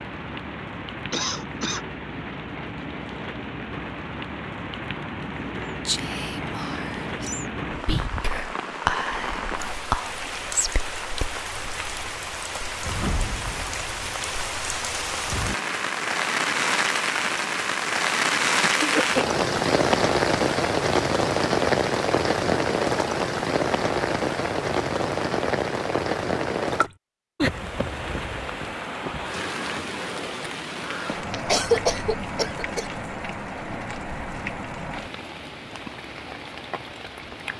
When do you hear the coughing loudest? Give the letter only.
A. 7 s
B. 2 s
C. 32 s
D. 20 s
C.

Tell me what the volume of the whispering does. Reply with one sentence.
The volume of the whispering goes up, then down.